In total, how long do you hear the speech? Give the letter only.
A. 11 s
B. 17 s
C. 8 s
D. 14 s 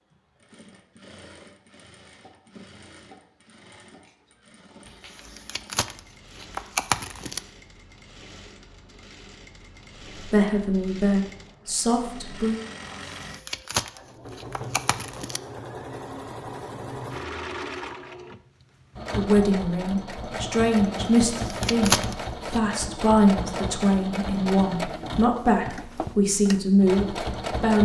A.